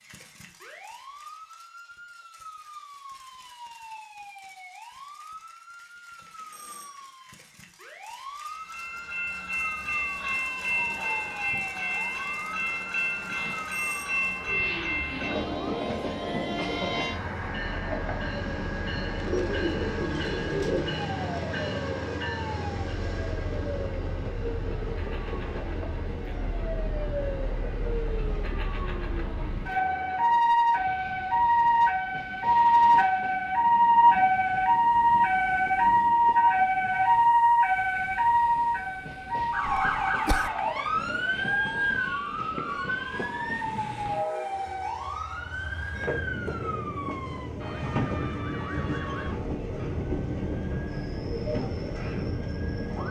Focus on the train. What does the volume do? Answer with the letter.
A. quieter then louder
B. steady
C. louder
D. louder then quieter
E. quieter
A.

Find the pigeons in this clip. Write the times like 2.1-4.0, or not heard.
19.2-20.9.